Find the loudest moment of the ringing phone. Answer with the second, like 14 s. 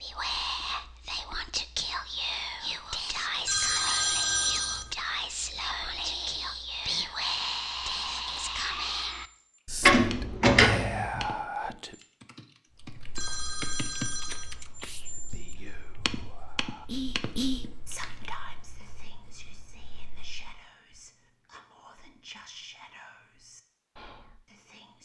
4 s.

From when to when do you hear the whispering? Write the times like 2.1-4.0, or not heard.
0.0-11.9, 15.1-25.0.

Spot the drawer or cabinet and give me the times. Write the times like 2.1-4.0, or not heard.
9.8-11.1.